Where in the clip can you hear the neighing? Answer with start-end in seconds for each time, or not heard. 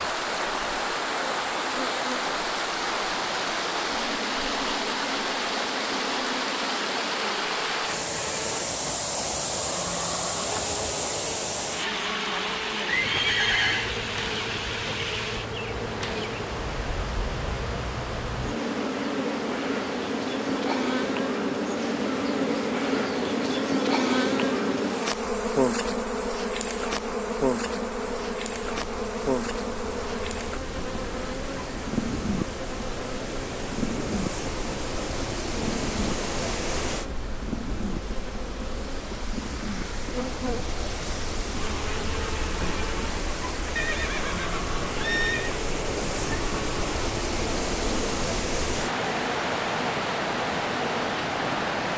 12.8-13.9, 43.8-45.5.